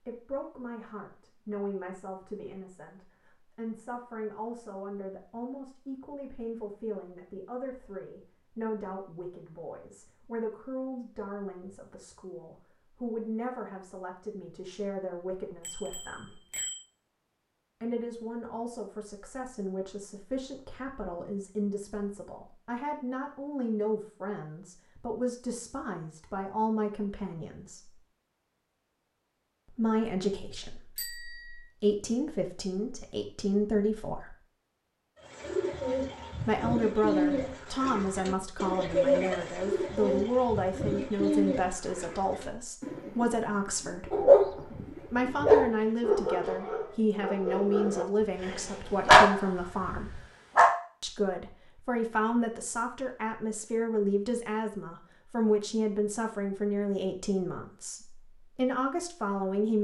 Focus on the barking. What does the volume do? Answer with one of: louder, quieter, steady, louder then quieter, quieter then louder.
quieter then louder.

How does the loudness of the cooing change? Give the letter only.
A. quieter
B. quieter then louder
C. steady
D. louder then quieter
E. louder
A.